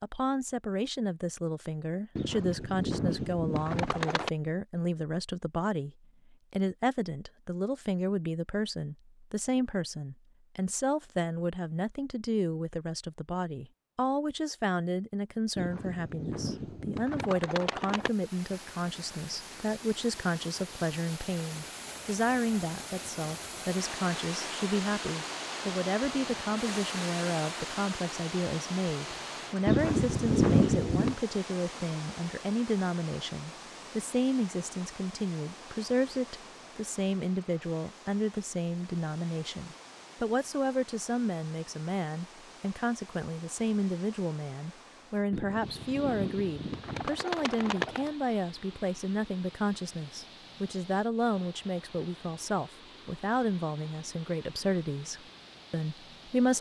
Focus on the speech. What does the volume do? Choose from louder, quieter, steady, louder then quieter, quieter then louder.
steady.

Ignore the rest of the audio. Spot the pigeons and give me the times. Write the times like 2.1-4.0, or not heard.
2.1-4.3, 15.6-18.1, 29.6-31.2, 45.3-48.1.